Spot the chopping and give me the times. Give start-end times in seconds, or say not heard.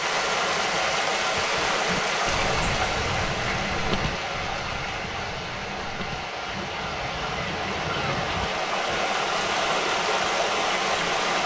not heard.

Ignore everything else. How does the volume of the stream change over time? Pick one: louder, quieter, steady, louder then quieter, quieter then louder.
quieter then louder.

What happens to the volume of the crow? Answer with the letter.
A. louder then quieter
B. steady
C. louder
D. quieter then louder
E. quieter
D.